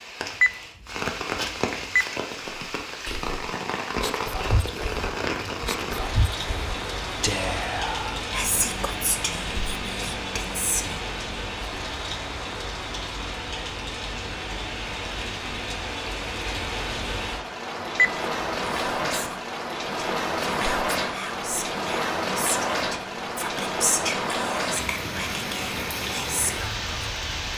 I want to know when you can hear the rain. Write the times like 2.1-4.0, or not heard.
0.0-27.5.